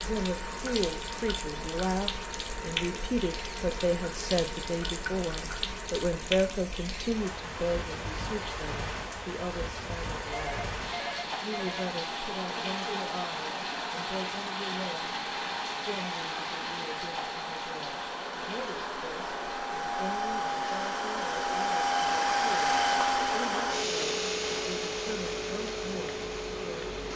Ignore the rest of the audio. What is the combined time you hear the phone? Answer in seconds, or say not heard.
2 s.